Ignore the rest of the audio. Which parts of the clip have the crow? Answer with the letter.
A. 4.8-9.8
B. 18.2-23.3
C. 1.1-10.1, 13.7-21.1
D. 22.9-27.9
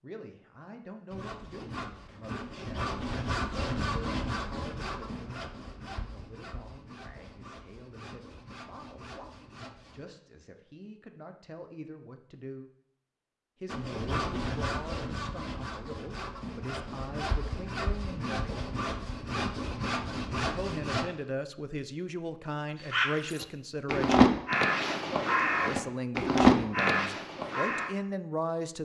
D.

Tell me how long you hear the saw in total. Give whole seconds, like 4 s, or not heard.
16 s.